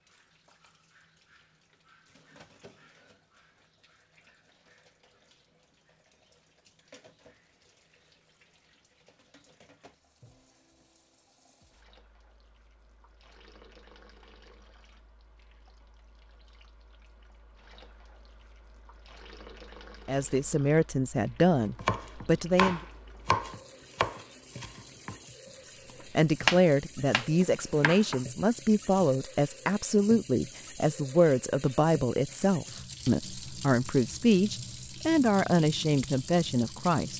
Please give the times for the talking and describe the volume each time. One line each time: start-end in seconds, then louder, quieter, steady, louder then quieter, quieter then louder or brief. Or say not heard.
20.1-22.8 brief
26.1-37.1 steady.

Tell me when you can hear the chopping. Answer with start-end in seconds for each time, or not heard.
21.8-25.1, 26.0-28.2.